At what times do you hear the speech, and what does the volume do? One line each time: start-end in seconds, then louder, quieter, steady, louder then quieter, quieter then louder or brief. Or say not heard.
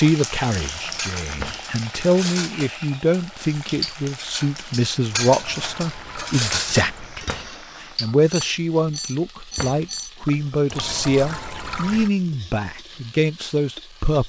0.0-14.2 steady.